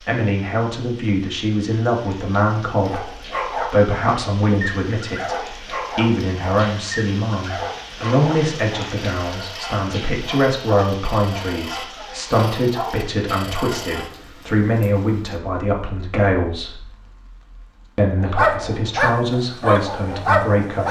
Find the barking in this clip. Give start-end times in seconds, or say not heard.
2.8-14.1, 18.2-20.8.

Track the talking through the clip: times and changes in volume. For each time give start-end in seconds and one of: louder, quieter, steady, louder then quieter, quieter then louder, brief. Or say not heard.
0.1-16.9 steady
17.9-20.8 brief.